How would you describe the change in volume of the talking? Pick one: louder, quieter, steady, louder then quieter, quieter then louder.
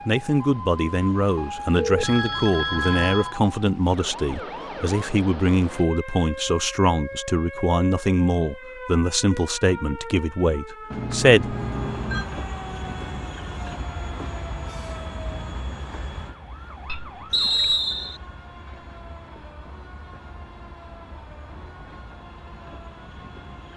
steady.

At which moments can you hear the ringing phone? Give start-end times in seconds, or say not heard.
1.8-3.4, 10.9-12.2, 16.9-17.8.